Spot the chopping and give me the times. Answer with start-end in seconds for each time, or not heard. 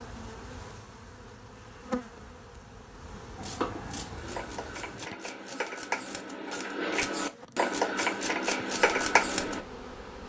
3.4-9.6.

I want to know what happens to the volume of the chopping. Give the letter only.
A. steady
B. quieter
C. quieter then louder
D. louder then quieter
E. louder
E.